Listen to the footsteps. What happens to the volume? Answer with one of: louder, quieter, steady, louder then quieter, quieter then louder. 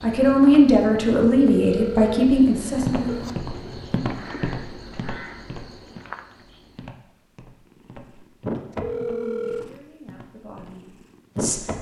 quieter.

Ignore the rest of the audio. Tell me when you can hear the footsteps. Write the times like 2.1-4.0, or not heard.
2.8-10.9.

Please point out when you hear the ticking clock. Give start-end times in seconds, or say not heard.
not heard.